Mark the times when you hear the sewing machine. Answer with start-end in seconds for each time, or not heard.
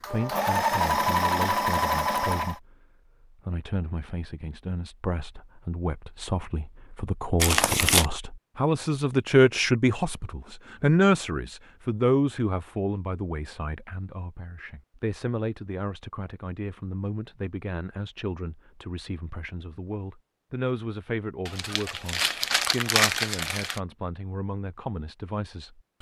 0.0-2.6.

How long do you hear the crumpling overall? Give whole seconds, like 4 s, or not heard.
3 s.